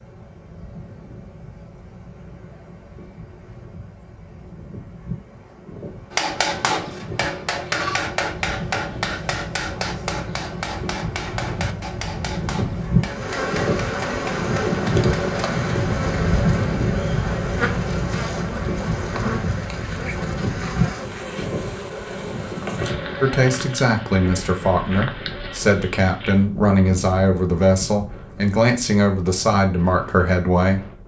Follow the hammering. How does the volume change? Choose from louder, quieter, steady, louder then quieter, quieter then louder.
quieter.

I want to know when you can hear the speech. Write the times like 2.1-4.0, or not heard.
23.2-30.8.